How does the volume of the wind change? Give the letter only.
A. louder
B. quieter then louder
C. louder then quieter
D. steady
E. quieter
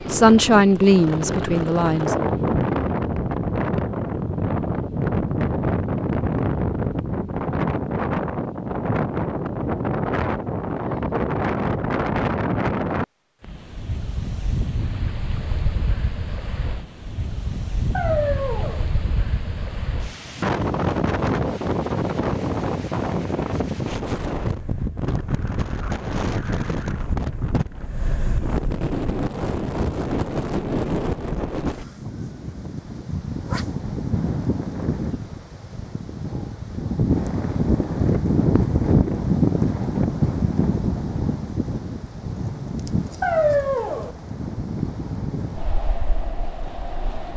D.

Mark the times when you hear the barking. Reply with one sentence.
You can hear the barking from 17.9 to 18.9 s and from 43.2 to 44.1 s.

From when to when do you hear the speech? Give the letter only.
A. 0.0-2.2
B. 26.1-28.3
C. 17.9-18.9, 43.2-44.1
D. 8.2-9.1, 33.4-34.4
A.